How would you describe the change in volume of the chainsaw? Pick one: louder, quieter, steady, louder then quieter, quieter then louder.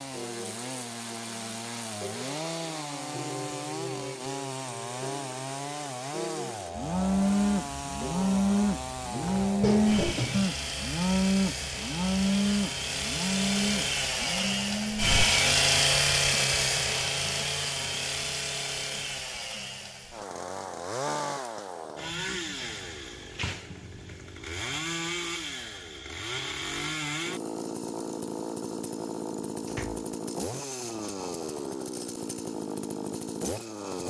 louder then quieter.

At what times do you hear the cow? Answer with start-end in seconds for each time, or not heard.
6.8-15.2.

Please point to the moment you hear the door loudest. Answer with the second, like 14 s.
10 s.